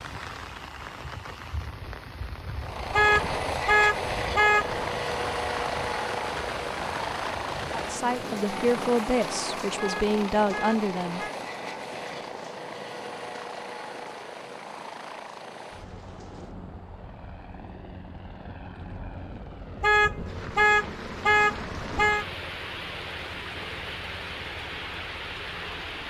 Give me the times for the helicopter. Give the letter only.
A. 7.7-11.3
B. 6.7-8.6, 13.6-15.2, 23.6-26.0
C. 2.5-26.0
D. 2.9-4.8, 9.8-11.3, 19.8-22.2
C.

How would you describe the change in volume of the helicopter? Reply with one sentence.
The volume of the helicopter goes down.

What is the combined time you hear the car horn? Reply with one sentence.
You can hear the car horn for 6 seconds altogether.